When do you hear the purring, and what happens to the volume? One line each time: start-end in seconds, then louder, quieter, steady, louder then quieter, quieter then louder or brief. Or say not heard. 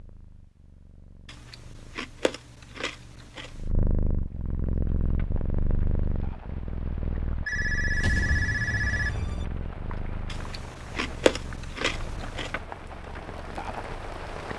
0.0-14.4 louder then quieter.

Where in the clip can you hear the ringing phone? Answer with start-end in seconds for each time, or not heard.
7.5-9.4.